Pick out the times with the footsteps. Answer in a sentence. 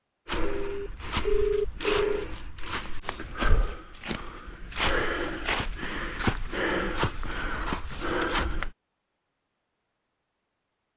You can hear the footsteps from 0.2 to 8.8 s.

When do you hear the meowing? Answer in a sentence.
The meowing can't be heard in this clip.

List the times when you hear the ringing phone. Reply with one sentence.
The ringing phone can be heard from 0.5 to 2.2 s and from 7.2 to 7.8 s.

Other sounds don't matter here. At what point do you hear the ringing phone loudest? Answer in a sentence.
The loudest moment of the ringing phone is at 1 second.